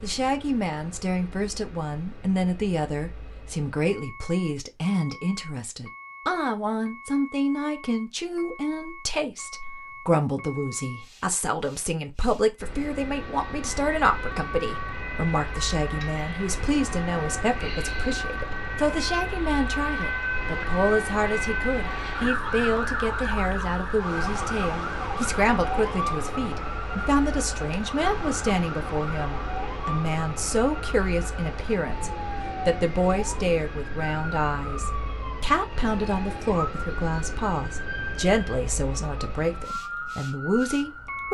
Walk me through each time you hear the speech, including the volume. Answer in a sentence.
The speech can be heard from 0.0 to 41.2 s, at a steady volume.